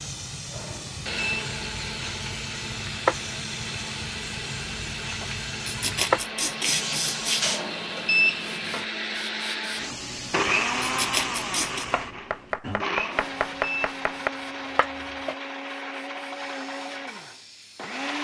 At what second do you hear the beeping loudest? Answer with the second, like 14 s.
8 s.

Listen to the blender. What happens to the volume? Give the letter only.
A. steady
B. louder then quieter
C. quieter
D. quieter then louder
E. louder
B.